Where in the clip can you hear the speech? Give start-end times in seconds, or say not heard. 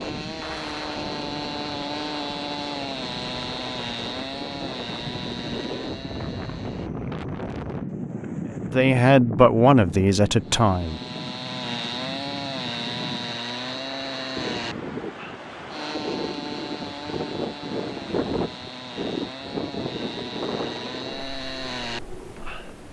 8.6-11.0.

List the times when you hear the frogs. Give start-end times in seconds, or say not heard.
not heard.